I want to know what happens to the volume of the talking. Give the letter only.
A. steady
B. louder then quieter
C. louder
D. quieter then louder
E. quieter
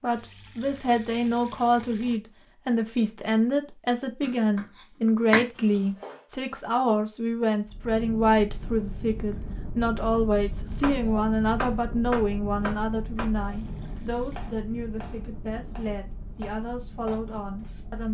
E.